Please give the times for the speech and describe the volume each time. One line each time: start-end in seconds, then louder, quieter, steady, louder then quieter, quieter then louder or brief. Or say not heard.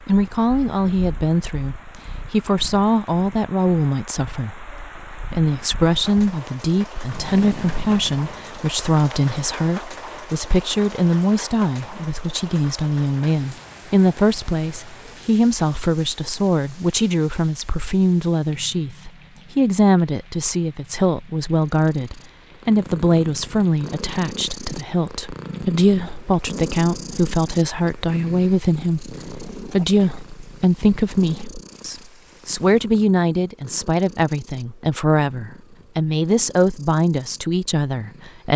0.1-38.5 steady.